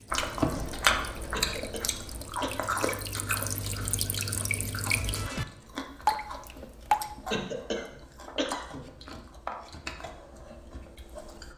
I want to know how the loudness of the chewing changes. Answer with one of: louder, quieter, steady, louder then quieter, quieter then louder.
quieter.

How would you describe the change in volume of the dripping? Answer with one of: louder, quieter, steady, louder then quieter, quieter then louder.
louder.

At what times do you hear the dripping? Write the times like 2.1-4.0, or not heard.
0.0-7.0.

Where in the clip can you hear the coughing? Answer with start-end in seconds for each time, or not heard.
1.3-2.9, 7.3-8.8.